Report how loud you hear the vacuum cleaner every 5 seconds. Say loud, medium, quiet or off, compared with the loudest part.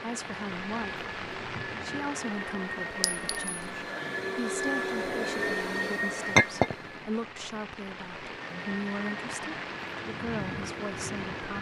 loud, loud, medium.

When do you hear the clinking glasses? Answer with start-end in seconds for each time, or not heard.
3.0-3.5, 6.3-6.8.